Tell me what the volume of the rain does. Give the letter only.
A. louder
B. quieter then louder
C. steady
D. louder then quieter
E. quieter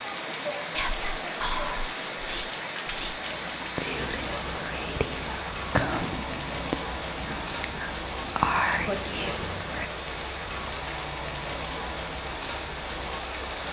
C.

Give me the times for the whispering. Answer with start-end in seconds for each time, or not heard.
0.7-9.9.